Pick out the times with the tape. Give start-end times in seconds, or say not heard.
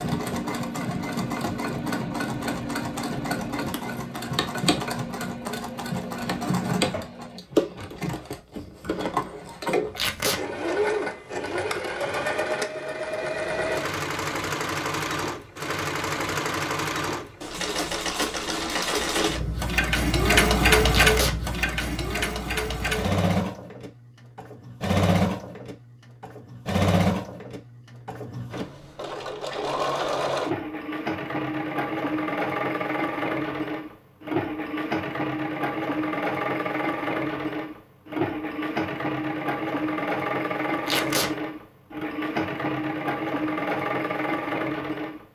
9.9-10.4, 20.9-21.4, 40.9-41.3.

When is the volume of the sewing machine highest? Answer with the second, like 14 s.
21 s.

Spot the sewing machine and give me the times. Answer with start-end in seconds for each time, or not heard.
0.0-45.2.